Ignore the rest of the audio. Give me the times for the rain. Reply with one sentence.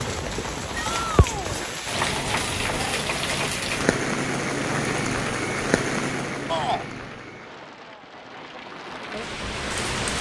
The rain can be heard from 0.0 to 10.1 s.